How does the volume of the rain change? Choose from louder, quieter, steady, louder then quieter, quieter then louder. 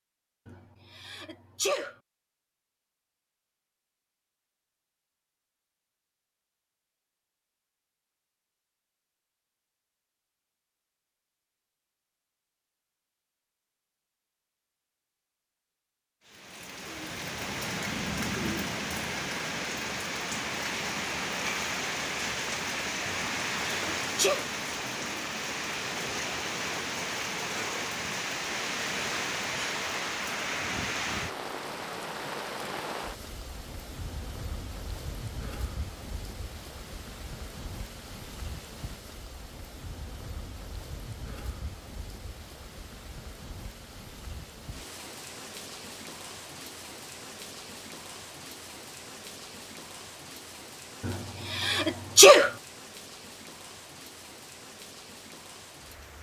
quieter.